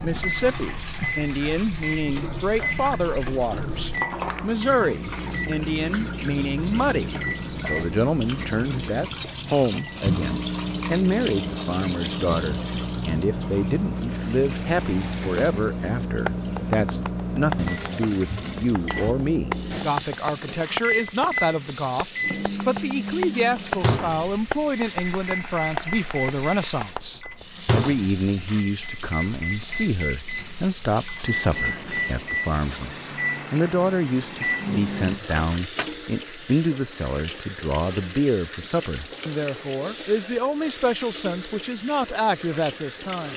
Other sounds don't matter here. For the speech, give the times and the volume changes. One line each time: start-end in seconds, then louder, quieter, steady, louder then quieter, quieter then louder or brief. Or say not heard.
0.0-43.3 steady.